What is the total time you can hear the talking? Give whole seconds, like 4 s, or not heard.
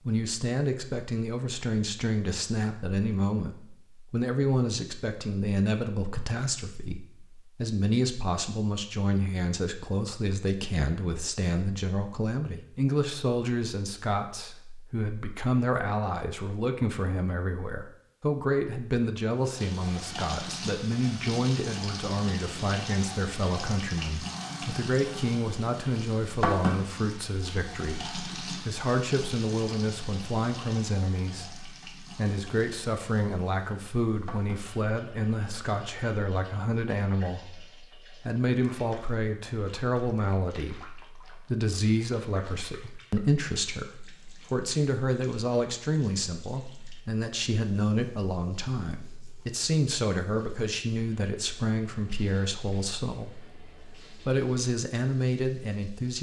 56 s.